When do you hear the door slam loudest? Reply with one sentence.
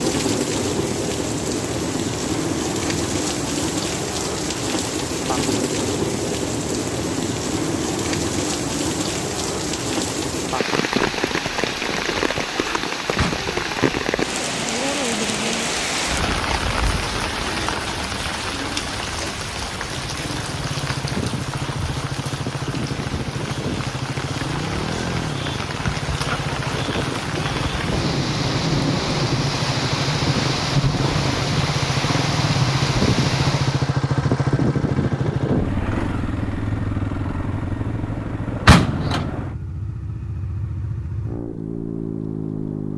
The volume of the door slam peaks at 39 seconds.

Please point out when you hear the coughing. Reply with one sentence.
You can't hear the coughing here.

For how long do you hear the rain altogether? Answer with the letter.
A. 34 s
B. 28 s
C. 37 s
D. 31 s
A.